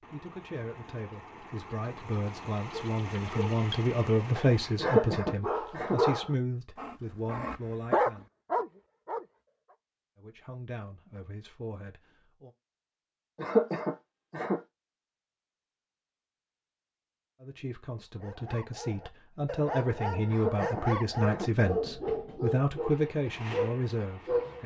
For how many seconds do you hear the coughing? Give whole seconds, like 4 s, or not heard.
4 s.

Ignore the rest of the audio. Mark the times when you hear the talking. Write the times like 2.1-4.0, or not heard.
0.0-8.3, 10.2-12.5, 17.4-24.6.